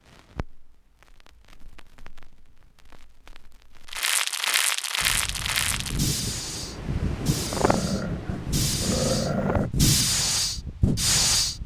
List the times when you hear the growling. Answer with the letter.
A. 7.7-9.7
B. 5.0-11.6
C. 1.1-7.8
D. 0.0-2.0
A.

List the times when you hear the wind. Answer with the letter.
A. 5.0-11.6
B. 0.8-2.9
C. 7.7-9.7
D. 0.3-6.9
A.